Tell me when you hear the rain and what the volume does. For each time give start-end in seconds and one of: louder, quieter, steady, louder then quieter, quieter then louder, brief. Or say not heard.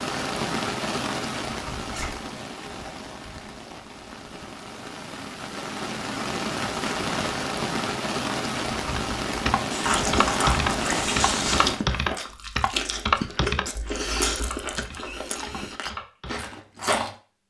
0.0-11.8 quieter then louder.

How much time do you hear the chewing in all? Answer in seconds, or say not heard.
7 s.